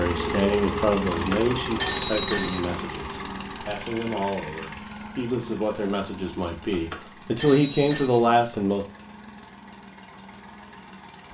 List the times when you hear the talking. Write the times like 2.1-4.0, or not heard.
0.0-8.8.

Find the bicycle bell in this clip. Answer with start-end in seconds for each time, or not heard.
1.1-2.6, 6.7-8.2.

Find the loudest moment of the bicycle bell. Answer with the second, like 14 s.
2 s.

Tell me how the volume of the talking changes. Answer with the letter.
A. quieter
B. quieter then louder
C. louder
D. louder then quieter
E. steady
B.